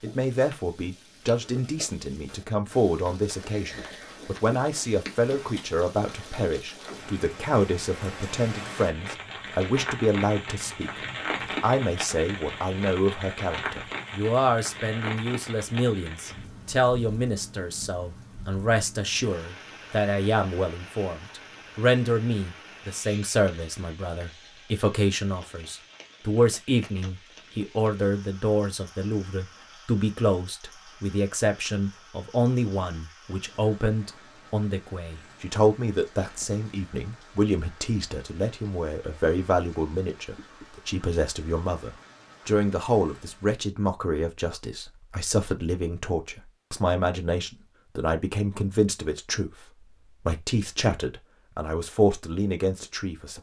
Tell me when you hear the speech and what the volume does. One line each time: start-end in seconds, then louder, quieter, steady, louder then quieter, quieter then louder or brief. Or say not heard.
0.0-53.3 steady.